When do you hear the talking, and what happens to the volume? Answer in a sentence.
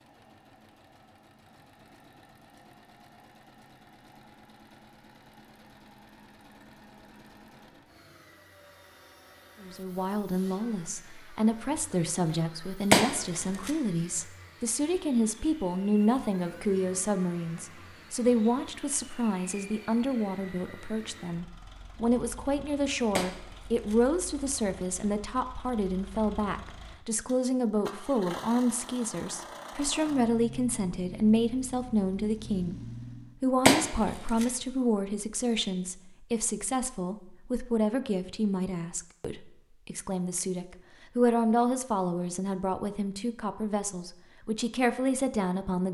You can hear the talking from 9.6 to 45.8 s, at a steady volume.